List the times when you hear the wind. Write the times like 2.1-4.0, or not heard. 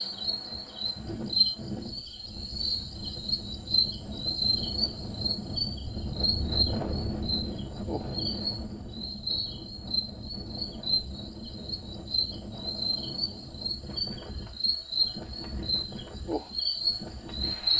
0.0-17.7.